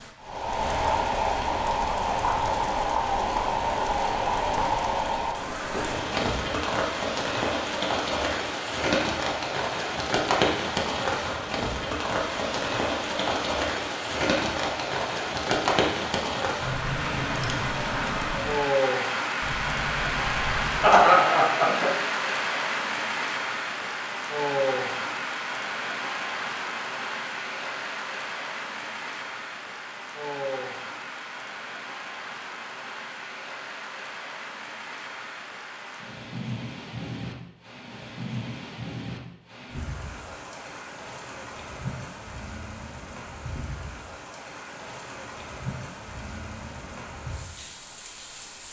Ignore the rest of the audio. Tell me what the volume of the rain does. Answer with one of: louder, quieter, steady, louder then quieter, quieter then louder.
quieter.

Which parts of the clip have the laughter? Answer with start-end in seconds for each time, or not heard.
20.8-21.9.